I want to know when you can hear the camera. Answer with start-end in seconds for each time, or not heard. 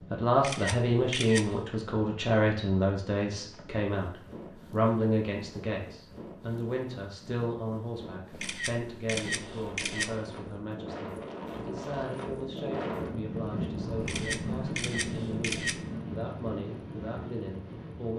0.3-1.6, 8.3-10.2, 14.0-15.8.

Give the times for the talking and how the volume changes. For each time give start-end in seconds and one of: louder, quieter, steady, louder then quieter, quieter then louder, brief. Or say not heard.
0.1-18.1 quieter.